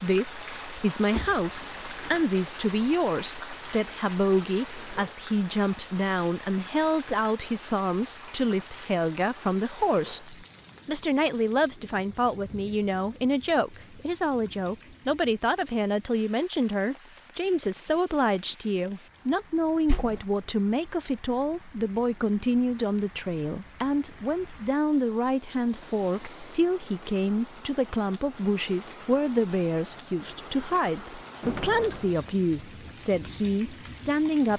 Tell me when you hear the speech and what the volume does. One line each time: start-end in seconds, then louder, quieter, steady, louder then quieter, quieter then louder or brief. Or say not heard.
0.0-34.5 steady.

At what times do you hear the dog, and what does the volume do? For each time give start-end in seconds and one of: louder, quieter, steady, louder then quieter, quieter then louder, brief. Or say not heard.
not heard.